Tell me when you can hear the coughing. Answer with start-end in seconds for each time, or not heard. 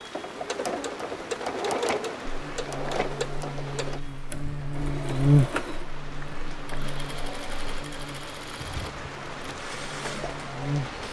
not heard.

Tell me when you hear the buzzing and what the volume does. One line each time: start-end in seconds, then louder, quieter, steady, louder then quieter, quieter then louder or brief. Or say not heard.
2.2-11.0 louder then quieter.